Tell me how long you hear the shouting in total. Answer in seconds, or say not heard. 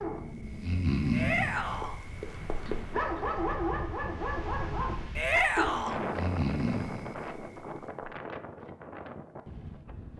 2 s.